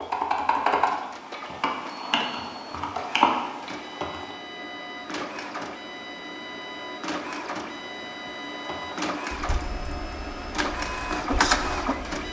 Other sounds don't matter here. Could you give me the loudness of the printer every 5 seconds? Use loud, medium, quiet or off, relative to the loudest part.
quiet, medium, loud.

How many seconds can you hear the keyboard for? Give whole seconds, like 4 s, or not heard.
8 s.